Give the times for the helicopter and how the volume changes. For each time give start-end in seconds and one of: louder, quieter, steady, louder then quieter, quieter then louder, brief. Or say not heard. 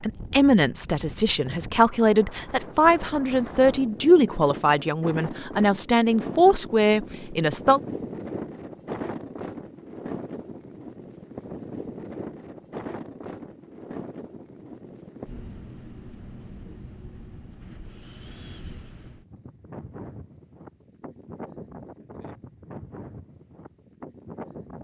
not heard.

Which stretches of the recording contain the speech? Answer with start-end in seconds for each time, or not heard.
0.0-7.8.